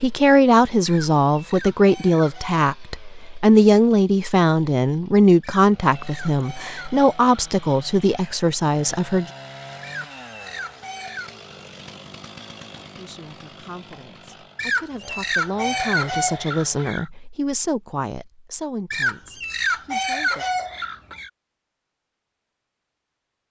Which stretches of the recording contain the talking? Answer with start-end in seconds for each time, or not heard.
0.0-9.2, 12.9-20.4.